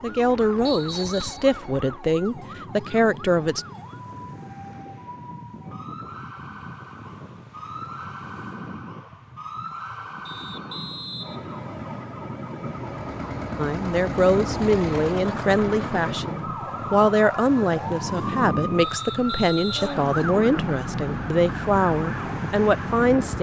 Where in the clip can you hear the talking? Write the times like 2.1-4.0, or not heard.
0.0-3.6, 13.6-23.3.